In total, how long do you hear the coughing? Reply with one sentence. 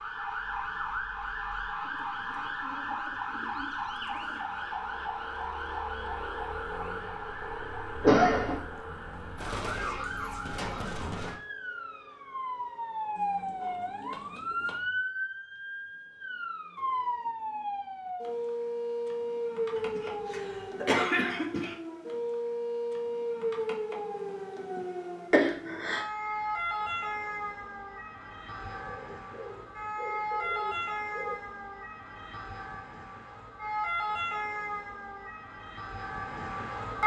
The coughing can be heard for 3 seconds in total.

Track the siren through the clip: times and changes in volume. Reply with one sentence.
You can hear the siren from 0.0 to 37.0 s, at a steady volume.